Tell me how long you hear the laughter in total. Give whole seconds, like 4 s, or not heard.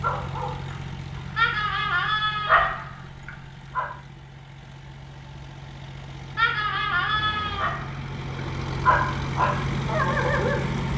3 s.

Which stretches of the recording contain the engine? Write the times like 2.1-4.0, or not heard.
0.0-10.9.